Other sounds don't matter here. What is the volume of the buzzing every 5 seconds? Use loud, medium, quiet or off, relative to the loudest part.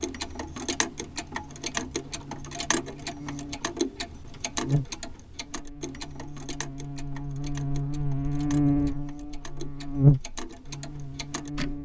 quiet, medium, loud.